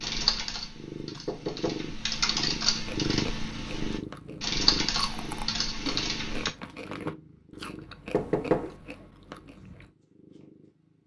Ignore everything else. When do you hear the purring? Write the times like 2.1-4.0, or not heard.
0.0-11.0.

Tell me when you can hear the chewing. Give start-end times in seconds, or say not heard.
2.8-9.9.